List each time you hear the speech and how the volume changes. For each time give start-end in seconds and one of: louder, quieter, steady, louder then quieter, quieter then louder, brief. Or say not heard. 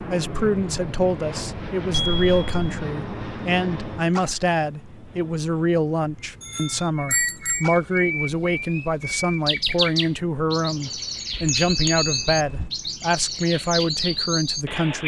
0.1-15.0 steady.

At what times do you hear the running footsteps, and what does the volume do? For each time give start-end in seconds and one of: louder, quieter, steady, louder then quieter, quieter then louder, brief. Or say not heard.
not heard.